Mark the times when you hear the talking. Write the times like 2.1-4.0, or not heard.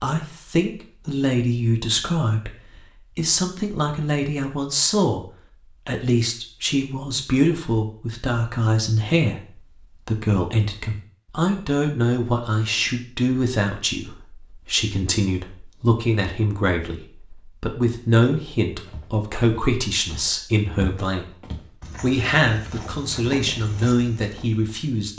0.0-5.2, 5.8-25.1.